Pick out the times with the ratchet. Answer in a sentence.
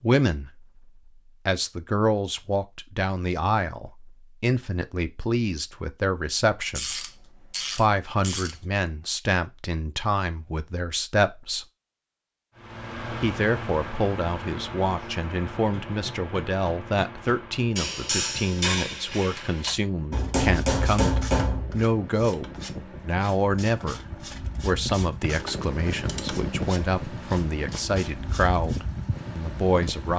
The ratchet can be heard from 6.8 to 8.6 s.